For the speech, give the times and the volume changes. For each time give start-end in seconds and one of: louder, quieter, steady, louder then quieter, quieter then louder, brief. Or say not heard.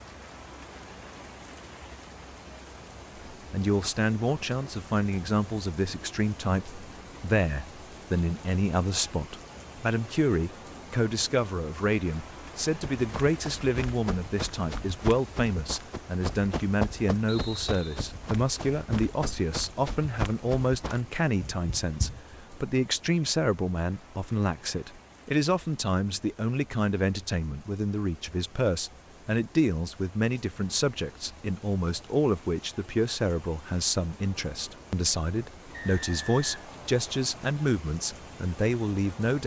3.3-39.4 steady.